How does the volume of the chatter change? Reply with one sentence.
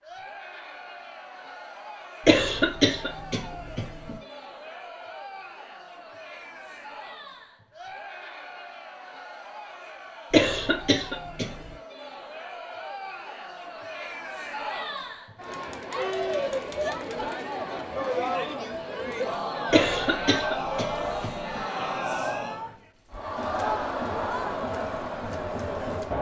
The volume of the chatter goes up.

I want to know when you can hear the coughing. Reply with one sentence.
The coughing can be heard from 2.2 to 4.2 s, from 10.3 to 11.7 s and from 19.7 to 21.6 s.